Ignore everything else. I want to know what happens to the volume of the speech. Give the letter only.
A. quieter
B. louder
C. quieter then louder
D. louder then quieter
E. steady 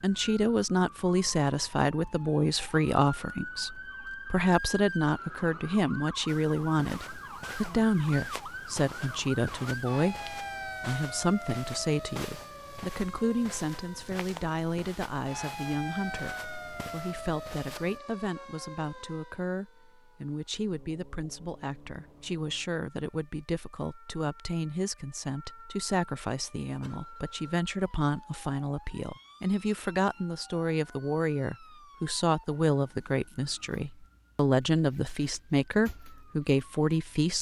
C.